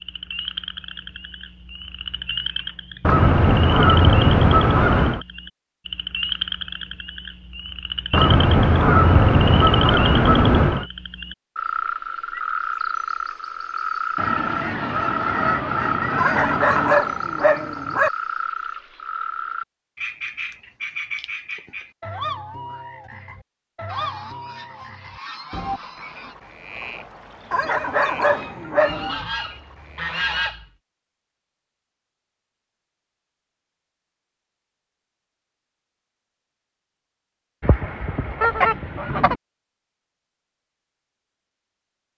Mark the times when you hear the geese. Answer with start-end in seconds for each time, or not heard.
3.0-5.2, 8.1-10.8, 14.2-17.0, 23.9-26.4, 28.2-30.6, 37.6-39.4.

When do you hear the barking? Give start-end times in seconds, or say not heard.
16.1-18.1, 27.5-29.2.